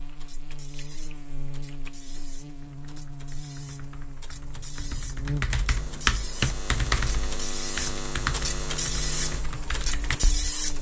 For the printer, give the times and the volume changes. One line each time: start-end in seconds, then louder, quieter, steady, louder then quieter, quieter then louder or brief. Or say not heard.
0.0-10.7 louder.